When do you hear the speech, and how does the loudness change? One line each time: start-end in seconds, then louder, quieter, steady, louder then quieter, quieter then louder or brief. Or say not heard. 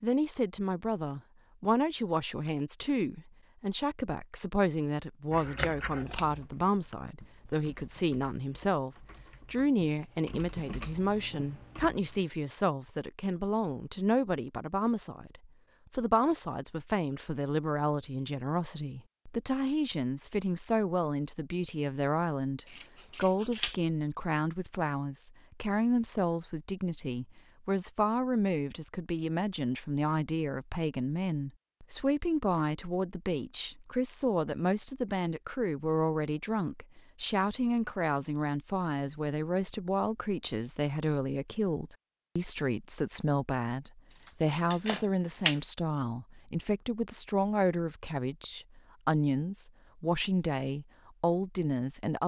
0.0-52.2 steady.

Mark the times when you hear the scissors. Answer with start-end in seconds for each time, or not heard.
5.3-6.5, 22.6-23.8, 44.1-45.6.